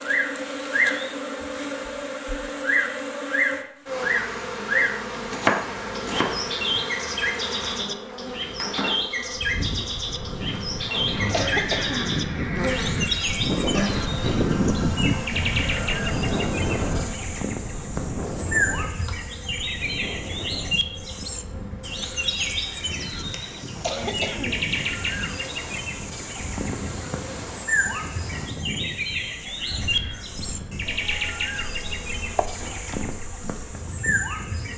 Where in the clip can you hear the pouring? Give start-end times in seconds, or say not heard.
not heard.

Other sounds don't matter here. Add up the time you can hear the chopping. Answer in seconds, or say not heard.
3 s.